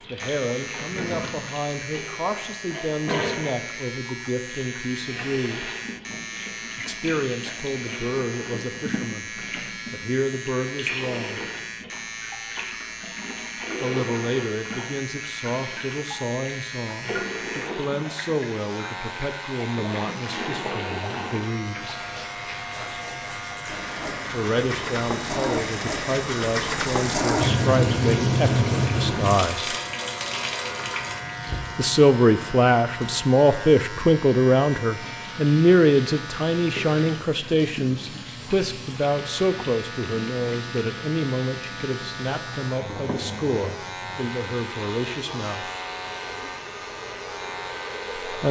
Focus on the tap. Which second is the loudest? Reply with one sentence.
The volume of the tap peaks at 28 seconds.